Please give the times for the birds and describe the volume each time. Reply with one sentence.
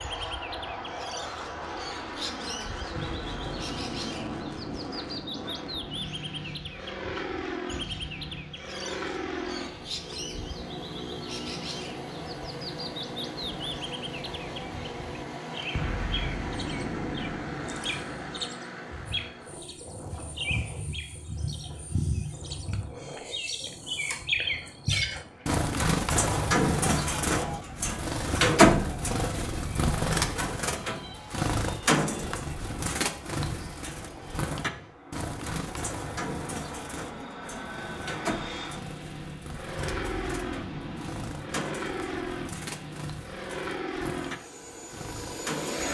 The birds can be heard from 0.0 to 45.8 s, getting louder then quieter.